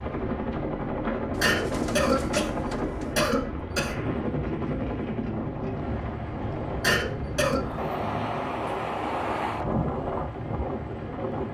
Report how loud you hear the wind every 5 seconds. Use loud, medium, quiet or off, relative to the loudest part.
medium, loud, loud.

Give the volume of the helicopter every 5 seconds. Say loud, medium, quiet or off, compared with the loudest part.
loud, medium, medium.